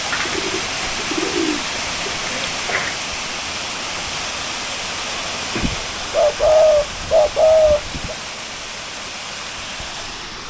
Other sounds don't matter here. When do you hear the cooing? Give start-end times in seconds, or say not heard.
0.1-3.0, 5.5-8.2.